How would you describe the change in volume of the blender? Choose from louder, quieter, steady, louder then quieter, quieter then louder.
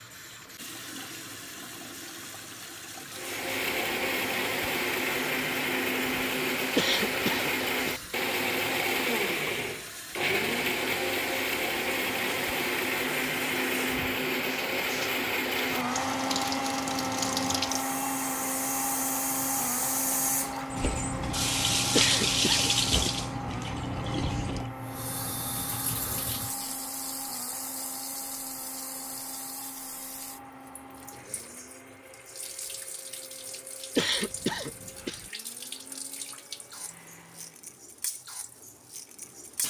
quieter.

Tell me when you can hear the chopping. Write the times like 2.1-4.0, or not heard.
not heard.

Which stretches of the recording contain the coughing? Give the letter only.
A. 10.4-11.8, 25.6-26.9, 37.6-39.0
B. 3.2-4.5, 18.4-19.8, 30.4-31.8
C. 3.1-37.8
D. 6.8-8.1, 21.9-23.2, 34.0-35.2
D.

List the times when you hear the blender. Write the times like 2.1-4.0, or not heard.
3.1-37.8.